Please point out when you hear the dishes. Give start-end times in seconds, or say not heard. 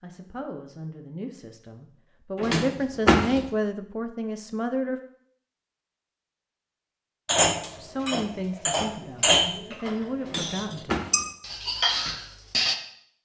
7.2-12.8.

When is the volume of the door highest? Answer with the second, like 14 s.
3 s.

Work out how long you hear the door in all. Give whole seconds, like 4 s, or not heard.
2 s.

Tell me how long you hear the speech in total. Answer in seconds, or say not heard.
8 s.